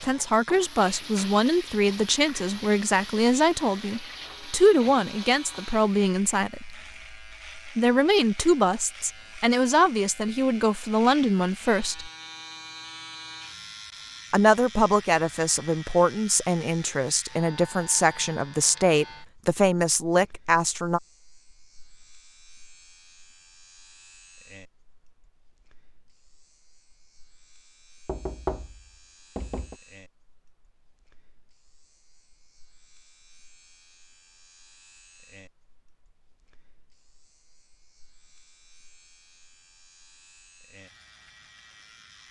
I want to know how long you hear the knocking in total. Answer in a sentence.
You can hear the knocking for 2 seconds altogether.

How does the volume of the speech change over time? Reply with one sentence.
The loudness of the speech stays about the same.